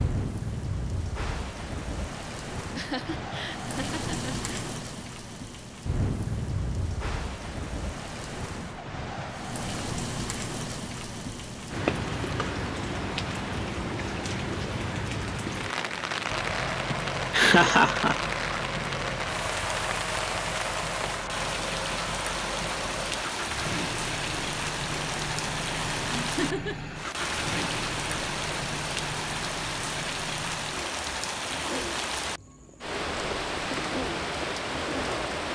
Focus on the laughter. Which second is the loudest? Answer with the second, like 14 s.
18 s.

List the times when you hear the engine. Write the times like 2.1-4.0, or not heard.
16.2-35.5.